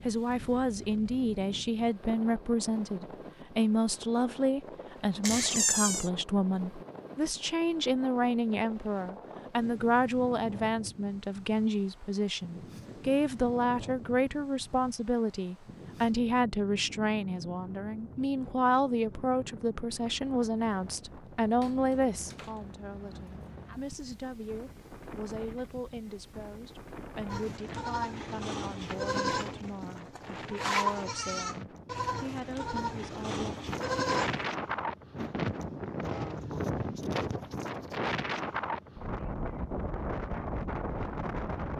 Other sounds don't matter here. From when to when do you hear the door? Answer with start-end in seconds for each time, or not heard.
5.2-6.1, 21.6-22.6.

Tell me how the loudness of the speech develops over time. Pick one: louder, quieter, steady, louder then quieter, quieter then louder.
quieter.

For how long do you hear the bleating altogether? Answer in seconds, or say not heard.
7 s.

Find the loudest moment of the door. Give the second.
6 s.